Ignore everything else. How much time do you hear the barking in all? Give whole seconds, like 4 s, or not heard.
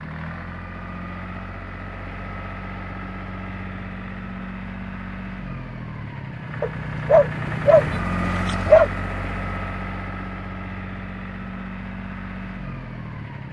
2 s.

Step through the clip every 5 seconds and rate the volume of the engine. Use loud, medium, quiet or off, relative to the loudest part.
medium, loud, medium.